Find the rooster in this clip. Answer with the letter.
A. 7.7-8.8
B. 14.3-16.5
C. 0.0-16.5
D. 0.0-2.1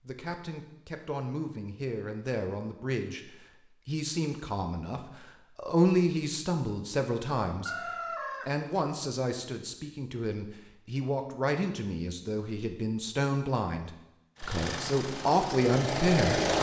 A.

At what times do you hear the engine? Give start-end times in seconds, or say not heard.
14.3-16.5.